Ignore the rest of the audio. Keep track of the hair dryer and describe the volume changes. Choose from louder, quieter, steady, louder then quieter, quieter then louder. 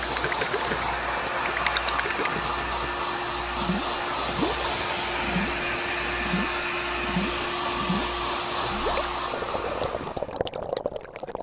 steady.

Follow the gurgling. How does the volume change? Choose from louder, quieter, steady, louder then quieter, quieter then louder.
steady.